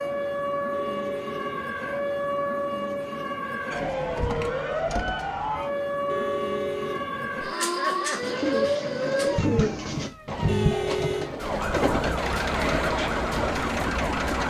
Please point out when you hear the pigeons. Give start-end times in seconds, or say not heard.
8.2-13.6.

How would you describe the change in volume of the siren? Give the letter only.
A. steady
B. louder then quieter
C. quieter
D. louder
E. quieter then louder
A.